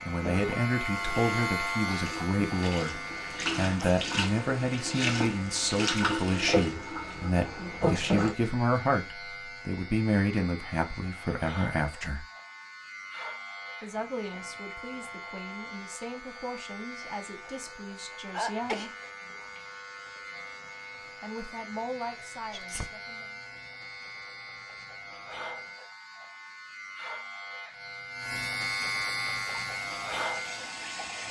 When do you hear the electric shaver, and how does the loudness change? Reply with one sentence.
The electric shaver can be heard from 0.0 to 31.2 s, getting quieter then louder.